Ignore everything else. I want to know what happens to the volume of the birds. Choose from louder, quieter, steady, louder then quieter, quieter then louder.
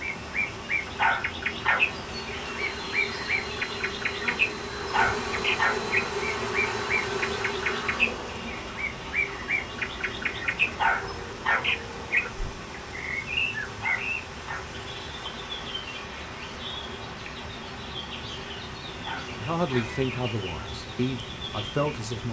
quieter.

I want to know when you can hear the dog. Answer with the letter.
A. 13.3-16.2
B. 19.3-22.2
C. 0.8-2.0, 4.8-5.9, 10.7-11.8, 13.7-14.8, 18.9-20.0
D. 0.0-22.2
C.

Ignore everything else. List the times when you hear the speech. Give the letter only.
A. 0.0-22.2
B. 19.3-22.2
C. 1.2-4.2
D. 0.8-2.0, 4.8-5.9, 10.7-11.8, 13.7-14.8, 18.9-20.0
B.